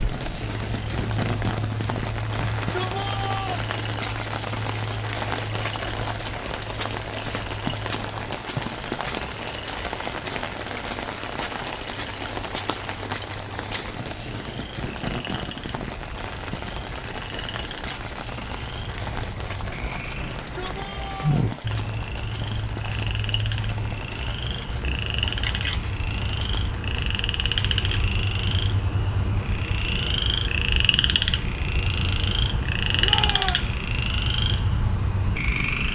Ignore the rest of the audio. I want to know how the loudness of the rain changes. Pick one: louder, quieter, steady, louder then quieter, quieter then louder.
quieter.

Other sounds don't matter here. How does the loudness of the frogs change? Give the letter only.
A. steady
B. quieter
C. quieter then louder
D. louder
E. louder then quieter
C.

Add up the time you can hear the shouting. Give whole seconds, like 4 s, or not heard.
3 s.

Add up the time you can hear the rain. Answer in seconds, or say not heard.
36 s.